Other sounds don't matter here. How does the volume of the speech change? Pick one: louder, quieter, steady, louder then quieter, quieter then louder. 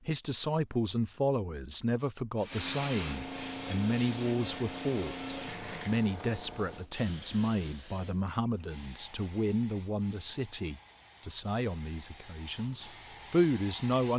steady.